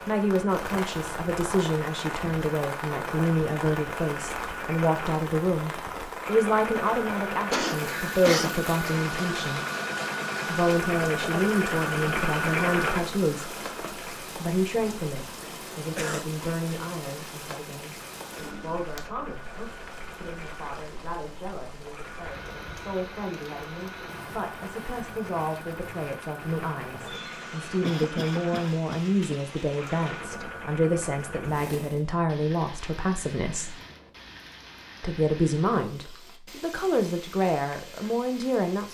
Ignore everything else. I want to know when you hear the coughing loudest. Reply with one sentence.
The volume of the coughing peaks at 8 seconds.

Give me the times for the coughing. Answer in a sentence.
The coughing can be heard from 7.5 to 8.6 s, from 15.8 to 16.2 s and from 27.8 to 29.4 s.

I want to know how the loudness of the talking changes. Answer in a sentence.
The volume of the talking goes down, then up.